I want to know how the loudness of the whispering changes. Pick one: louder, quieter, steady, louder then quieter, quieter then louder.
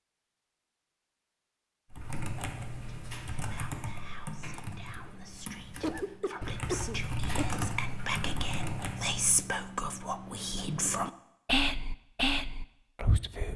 louder.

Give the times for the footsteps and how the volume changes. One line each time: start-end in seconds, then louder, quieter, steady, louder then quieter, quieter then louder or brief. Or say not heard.
not heard.